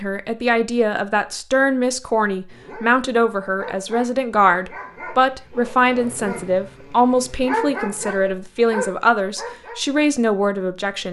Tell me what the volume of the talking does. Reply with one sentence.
The volume of the talking stays about the same.